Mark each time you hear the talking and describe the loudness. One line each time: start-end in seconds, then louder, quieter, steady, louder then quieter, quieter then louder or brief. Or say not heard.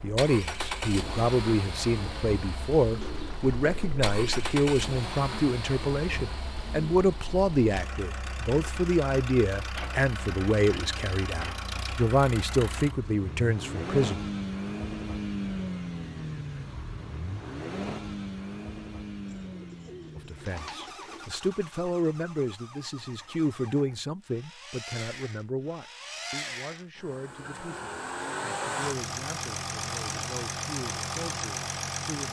0.0-14.2 steady
20.1-32.2 quieter.